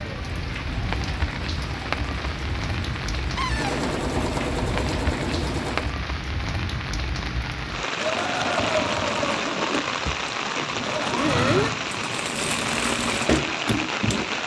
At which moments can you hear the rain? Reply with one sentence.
You can hear the rain from 0.0 to 14.4 s.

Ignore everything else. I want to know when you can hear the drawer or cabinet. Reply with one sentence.
You can hear the drawer or cabinet from 3.4 to 3.9 s.